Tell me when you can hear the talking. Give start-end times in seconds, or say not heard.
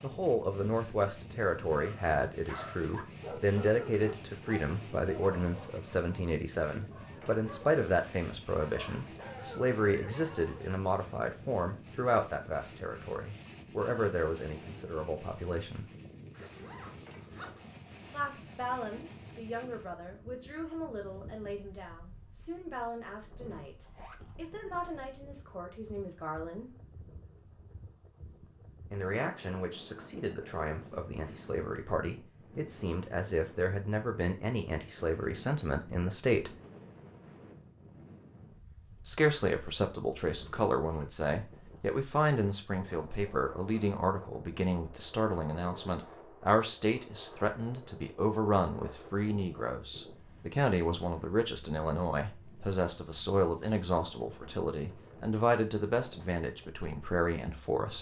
0.0-15.9, 18.1-26.7, 28.9-36.5, 39.0-57.9.